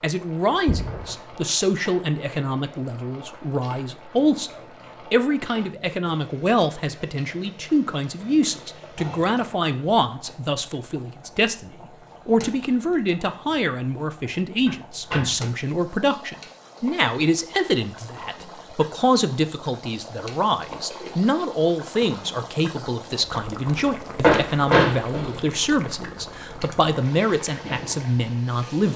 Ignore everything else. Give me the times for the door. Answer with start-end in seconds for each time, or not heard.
0.7-1.1, 14.7-15.4, 24.2-25.4.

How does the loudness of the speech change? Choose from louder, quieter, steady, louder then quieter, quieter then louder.
steady.